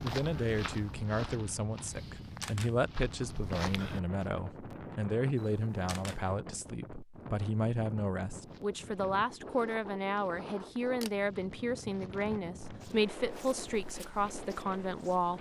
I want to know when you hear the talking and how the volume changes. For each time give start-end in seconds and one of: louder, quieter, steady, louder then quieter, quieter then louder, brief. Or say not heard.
0.0-15.3 steady.